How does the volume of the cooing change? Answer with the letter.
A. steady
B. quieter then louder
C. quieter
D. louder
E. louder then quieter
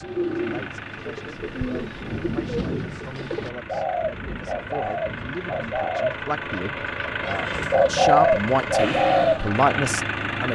D.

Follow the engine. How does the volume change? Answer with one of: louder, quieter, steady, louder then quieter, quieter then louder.
louder.